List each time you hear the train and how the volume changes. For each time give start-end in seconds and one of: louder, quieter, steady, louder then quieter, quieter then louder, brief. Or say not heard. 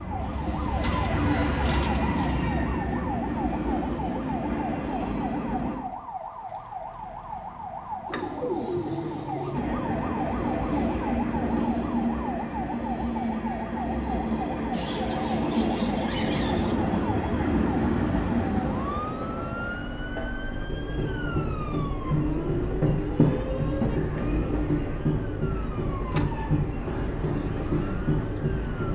0.0-5.8 steady
9.5-28.8 steady.